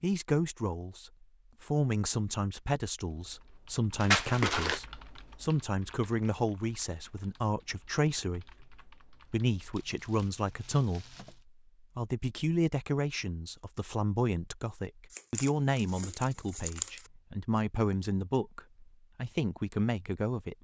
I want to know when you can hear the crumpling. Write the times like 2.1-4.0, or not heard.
4.0-4.8, 9.7-11.4, 15.1-17.1.